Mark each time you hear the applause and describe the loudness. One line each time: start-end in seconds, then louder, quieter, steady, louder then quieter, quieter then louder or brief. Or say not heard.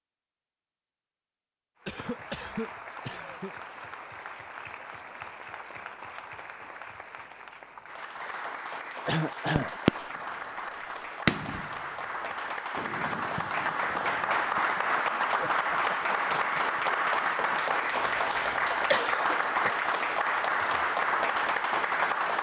1.8-22.3 louder.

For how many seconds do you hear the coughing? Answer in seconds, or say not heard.
4 s.